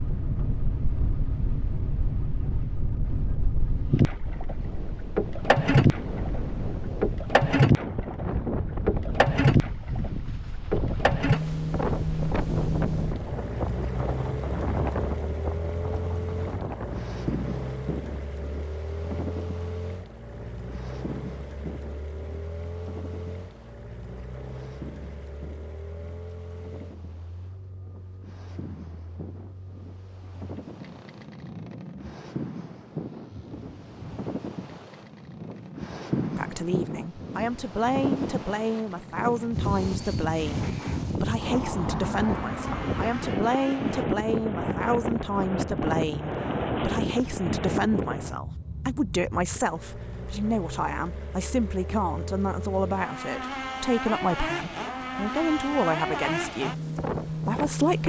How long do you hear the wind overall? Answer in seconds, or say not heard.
48 s.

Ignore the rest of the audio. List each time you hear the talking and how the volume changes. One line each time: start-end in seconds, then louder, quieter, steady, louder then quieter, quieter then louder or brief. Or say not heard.
36.2-58.0 steady.